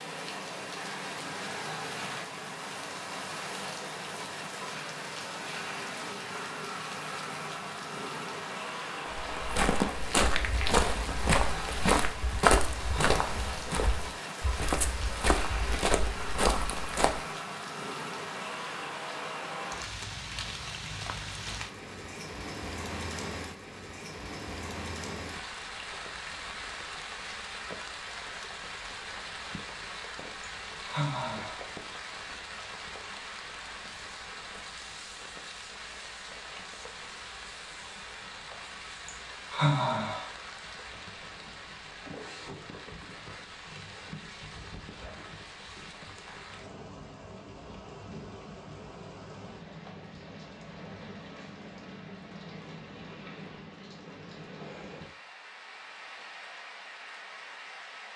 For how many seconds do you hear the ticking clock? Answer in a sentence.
The ticking clock can't be heard in this clip.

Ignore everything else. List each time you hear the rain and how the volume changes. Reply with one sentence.
You can hear the rain from 0.0 to 58.1 s, getting quieter.